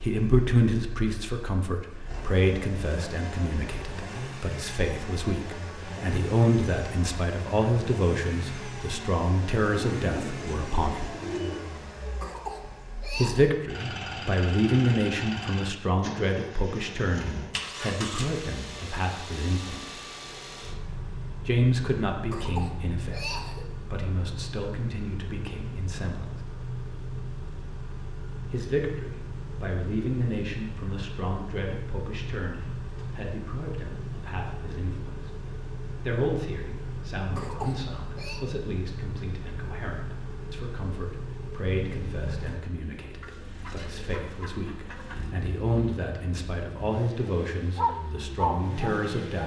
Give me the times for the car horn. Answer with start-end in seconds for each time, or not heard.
not heard.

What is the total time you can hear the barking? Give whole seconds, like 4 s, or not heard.
2 s.